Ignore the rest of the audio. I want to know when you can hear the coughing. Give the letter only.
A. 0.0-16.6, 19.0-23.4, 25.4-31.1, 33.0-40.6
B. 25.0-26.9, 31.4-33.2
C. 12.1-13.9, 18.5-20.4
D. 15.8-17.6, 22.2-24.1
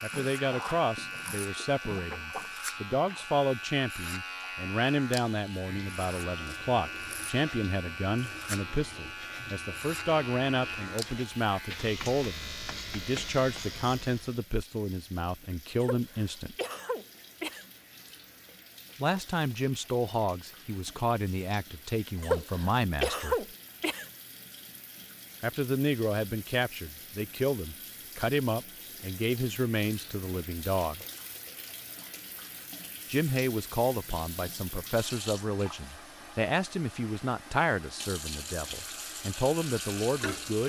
D.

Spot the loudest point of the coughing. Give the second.
23 s.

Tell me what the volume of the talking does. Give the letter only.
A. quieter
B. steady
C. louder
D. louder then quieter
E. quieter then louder
B.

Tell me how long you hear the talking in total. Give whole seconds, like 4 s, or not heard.
34 s.